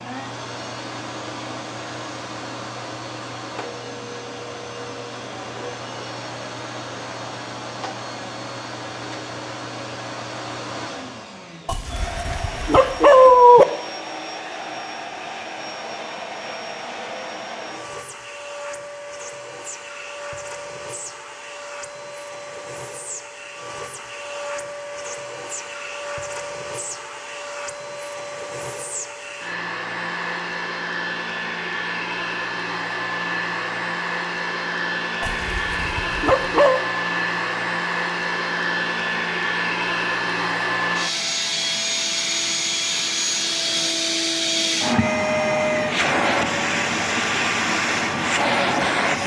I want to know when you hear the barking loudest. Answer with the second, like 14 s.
13 s.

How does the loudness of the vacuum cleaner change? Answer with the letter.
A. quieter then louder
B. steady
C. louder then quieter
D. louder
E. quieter
D.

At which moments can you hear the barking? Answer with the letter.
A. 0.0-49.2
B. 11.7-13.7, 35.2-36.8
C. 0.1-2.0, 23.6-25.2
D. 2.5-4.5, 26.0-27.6
B.